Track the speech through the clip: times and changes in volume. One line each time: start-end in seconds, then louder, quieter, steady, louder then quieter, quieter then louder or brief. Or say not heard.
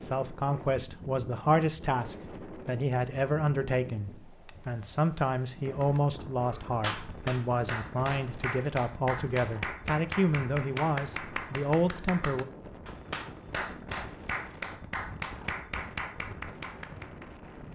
0.0-12.4 steady.